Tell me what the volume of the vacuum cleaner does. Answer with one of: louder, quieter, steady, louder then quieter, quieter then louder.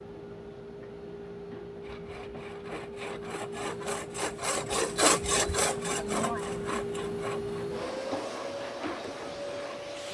louder.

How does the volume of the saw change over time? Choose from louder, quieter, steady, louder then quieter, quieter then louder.
louder then quieter.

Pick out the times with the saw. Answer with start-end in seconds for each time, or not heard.
1.8-9.9.